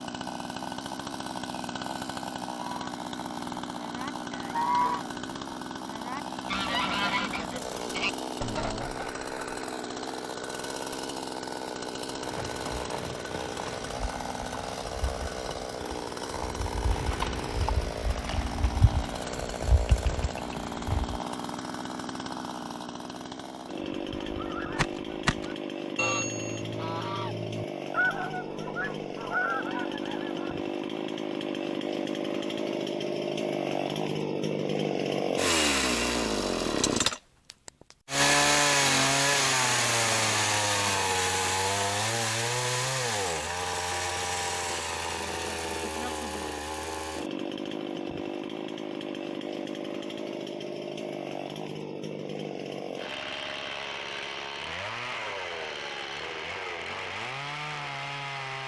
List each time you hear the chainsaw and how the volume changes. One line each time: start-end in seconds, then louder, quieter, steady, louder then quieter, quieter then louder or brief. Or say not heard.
0.0-58.6 louder then quieter.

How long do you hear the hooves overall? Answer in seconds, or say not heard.
9 s.